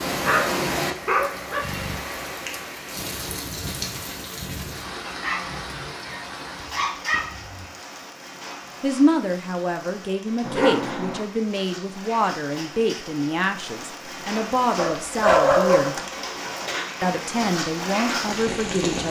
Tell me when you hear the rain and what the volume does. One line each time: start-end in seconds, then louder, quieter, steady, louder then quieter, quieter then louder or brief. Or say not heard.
0.0-19.0 quieter then louder.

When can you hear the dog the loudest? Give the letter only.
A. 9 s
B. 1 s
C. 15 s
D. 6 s
C.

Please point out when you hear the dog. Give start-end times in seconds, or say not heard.
0.2-1.9, 5.0-7.7, 10.4-11.2, 14.8-16.1.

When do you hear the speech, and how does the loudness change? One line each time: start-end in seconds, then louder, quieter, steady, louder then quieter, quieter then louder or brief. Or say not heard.
8.8-15.9 steady
17.0-19.0 brief.